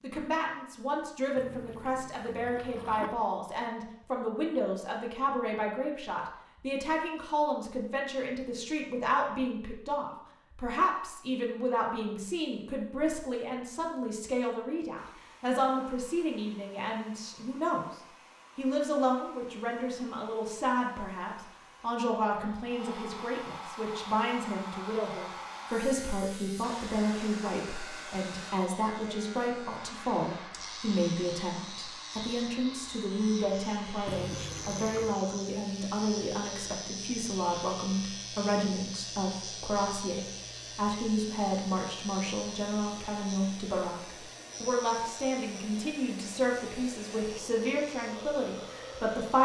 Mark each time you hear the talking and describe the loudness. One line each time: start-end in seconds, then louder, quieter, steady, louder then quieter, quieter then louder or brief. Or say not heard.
0.0-17.9 steady
18.6-49.3 steady.